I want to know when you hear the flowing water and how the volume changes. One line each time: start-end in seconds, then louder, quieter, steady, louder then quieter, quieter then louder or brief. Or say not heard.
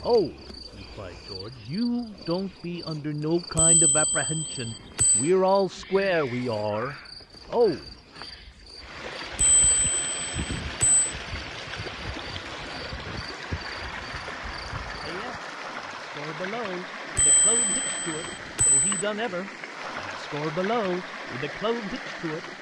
8.8-22.5 steady.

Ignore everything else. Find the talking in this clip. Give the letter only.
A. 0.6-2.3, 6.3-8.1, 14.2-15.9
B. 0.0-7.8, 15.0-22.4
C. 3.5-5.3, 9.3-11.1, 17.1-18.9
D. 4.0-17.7
B.